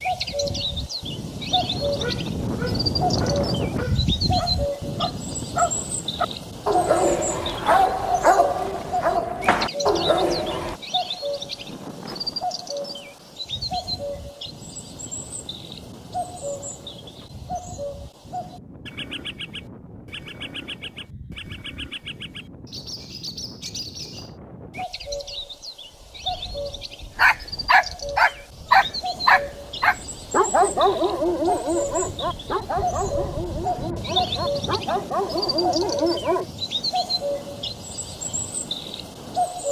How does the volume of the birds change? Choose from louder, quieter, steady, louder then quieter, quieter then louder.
quieter then louder.